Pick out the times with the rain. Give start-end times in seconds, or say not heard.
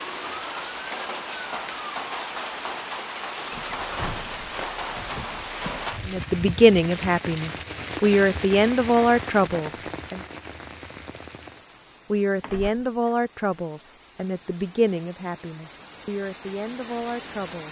0.0-17.6.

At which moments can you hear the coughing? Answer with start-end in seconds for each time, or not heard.
not heard.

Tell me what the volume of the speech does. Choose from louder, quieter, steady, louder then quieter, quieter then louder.
quieter.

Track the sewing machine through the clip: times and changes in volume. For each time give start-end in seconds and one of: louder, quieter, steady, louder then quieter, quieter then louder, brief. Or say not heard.
not heard.